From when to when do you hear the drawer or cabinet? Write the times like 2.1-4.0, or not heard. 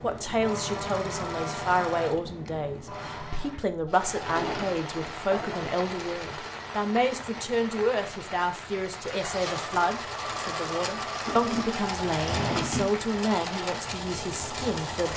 4.0-5.8, 11.1-12.9.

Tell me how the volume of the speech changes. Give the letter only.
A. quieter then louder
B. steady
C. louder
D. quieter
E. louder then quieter
B.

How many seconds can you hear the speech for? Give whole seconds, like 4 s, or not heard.
15 s.